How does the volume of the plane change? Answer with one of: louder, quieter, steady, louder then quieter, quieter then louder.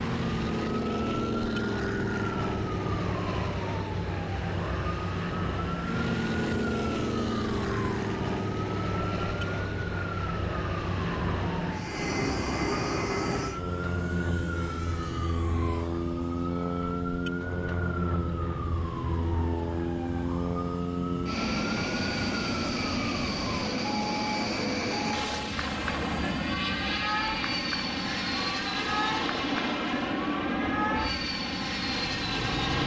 steady.